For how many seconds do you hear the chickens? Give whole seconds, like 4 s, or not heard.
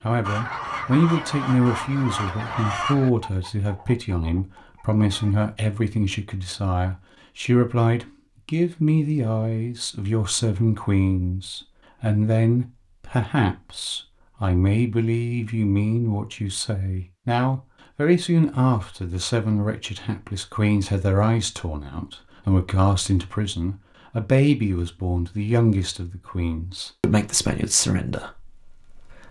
5 s.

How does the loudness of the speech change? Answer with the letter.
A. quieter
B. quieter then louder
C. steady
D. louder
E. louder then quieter
C.